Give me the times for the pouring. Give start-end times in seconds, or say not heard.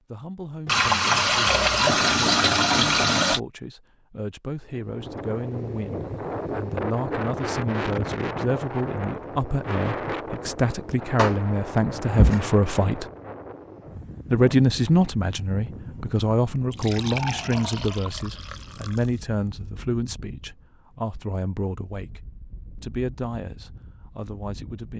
0.7-3.4, 11.2-12.4, 16.7-19.2.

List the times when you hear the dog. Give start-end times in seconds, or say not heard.
not heard.